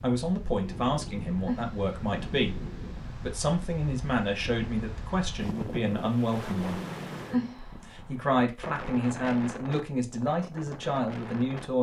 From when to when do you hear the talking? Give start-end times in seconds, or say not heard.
0.0-6.8, 7.6-11.7.